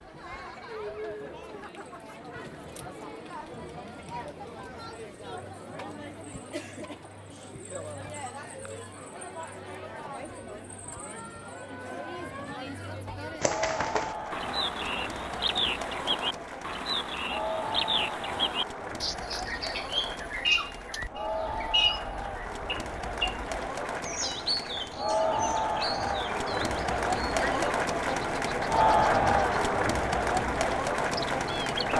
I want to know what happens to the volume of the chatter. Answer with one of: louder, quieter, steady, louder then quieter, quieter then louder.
louder.